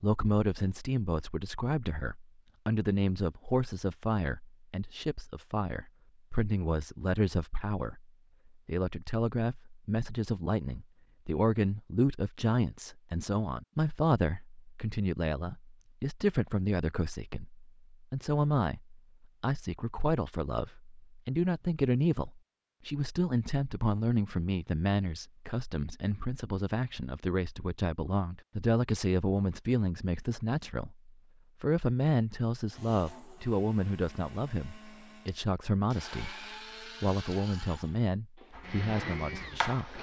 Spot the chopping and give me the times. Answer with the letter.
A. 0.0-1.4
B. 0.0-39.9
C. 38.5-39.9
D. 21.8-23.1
C.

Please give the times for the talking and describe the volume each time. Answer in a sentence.
The talking can be heard from 0.0 to 39.9 s, at a steady volume.